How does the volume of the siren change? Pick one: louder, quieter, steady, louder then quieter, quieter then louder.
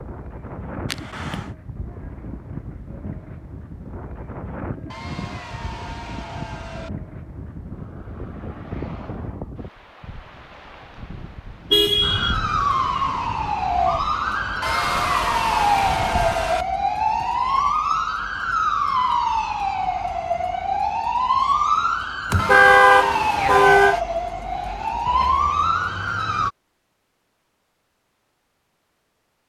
steady.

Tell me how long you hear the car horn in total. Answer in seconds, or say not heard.
3 s.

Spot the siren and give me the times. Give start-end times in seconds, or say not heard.
12.0-26.5.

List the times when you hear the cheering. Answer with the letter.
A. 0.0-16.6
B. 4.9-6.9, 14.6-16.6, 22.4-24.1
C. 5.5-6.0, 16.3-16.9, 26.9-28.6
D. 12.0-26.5
B.